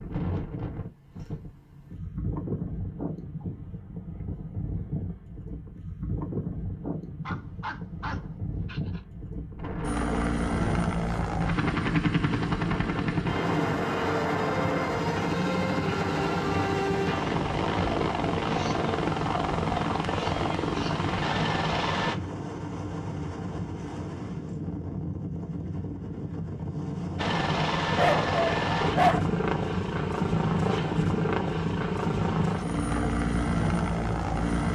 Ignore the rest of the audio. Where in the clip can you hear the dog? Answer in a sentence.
The dog can be heard from 7.2 to 9.0 s and from 27.9 to 29.2 s.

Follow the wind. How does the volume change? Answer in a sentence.
The volume of the wind stays about the same.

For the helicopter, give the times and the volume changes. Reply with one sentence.
You can hear the helicopter from 9.8 to 22.1 s, at a steady volume; and from 27.1 to 34.7 s, at a steady volume.